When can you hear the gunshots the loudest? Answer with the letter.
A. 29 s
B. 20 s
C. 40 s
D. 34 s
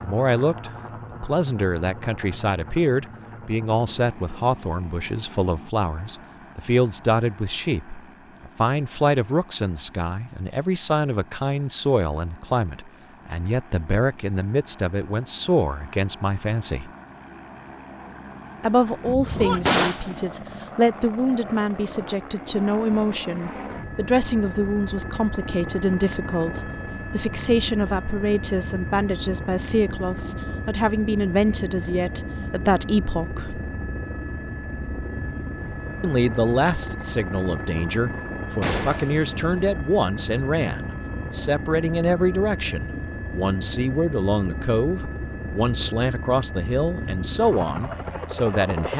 B.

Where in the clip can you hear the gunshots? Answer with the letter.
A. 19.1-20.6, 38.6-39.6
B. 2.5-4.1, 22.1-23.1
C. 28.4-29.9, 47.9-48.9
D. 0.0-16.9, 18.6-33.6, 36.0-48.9
A.